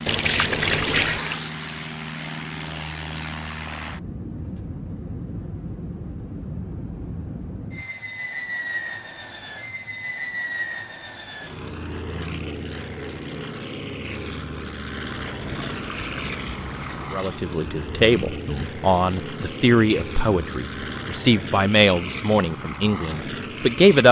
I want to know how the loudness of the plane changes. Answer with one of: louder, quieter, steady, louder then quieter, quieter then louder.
steady.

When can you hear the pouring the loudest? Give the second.
1 s.